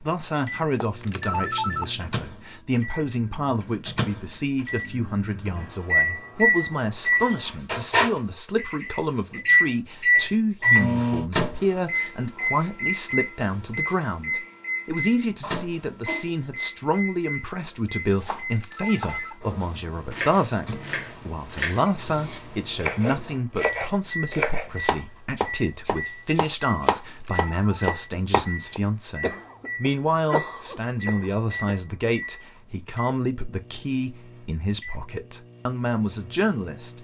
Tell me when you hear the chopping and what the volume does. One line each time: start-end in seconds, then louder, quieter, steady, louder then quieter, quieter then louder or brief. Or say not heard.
18.1-28.8 louder.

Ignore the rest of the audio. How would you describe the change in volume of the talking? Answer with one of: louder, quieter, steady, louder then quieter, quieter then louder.
steady.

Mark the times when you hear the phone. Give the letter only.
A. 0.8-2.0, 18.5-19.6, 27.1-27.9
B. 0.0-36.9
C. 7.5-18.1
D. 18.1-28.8
A.